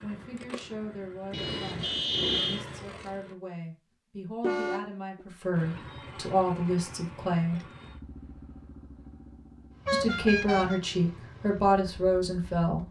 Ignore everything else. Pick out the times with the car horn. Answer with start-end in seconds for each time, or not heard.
1.3-2.6, 4.4-5.2, 9.8-10.8.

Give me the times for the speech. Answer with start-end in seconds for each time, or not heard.
0.0-7.6, 9.9-12.8.